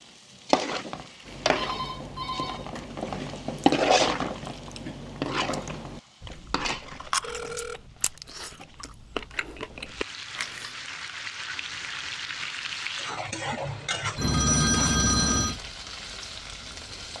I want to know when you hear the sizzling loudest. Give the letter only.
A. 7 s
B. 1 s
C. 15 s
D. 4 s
D.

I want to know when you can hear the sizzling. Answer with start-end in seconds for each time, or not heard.
0.0-17.1.